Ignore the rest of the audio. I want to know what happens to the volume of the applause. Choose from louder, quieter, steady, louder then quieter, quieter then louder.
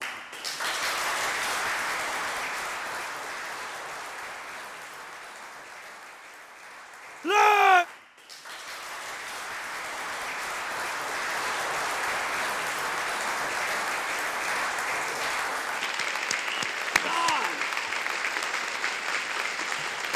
quieter then louder.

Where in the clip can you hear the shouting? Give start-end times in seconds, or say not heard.
7.2-7.8, 17.0-17.6.